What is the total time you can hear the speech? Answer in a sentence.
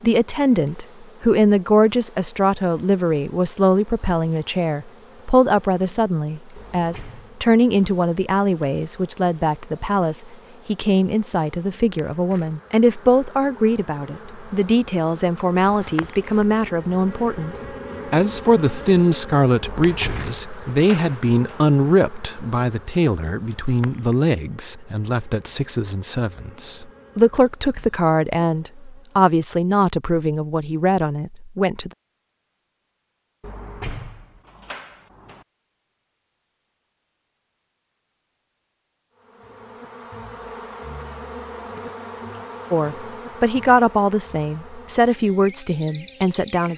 The speech can be heard for 36 seconds in total.